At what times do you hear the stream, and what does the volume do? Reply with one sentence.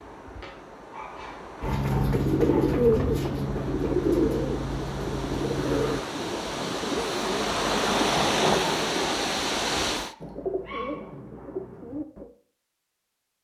You can hear the stream from 0.0 to 10.2 s, getting louder.